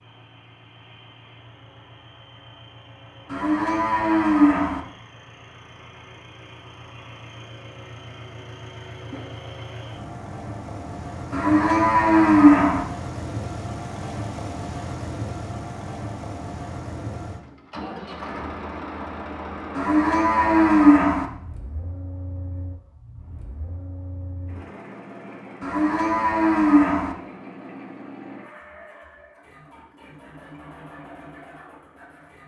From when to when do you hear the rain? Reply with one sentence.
You can't hear the rain here.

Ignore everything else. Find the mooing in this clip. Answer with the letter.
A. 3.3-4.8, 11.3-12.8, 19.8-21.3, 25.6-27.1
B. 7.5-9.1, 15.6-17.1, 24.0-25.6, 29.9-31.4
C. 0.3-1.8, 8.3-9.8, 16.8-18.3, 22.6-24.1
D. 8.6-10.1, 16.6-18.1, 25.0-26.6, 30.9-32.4
A.